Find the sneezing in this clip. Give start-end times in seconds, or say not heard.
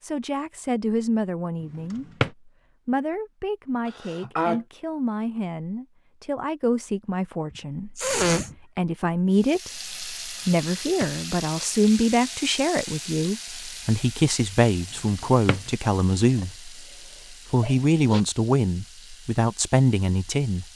3.9-4.6, 8.0-8.6, 16.2-18.2.